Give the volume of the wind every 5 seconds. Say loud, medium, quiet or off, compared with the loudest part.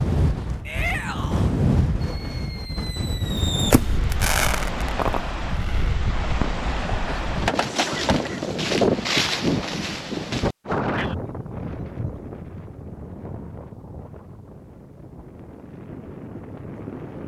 loud, loud, medium, quiet.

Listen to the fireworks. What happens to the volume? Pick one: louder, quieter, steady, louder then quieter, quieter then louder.
louder then quieter.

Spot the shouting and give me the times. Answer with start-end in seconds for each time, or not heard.
0.7-1.5.